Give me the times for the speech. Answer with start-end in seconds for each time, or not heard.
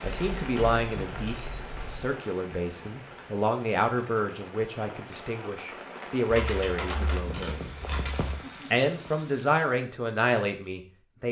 0.0-7.7, 8.7-11.2.